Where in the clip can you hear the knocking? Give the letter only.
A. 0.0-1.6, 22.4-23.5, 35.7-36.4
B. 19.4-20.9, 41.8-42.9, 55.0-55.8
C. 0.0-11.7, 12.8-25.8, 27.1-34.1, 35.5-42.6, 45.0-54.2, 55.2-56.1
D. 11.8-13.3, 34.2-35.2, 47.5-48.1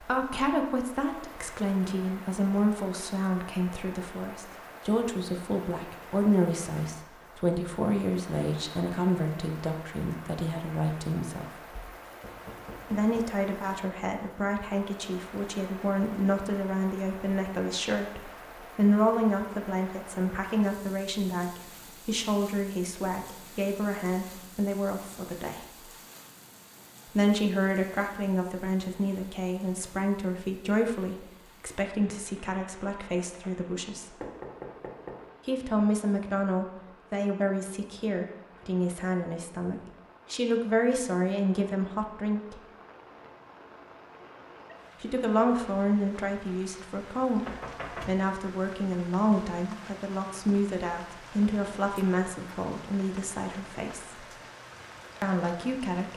D.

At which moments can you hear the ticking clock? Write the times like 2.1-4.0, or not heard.
not heard.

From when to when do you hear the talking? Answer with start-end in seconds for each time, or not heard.
0.0-11.7, 12.8-25.8, 27.1-34.1, 35.5-42.6, 45.0-54.2, 55.2-56.1.